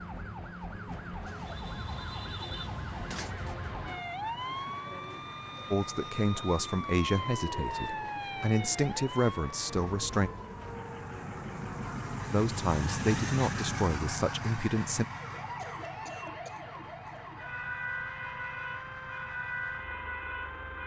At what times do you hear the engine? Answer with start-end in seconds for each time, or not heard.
0.0-20.8.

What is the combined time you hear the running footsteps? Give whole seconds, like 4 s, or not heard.
not heard.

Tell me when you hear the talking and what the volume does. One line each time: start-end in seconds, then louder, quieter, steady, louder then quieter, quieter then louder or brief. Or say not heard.
5.7-10.3 quieter then louder
12.3-15.1 brief.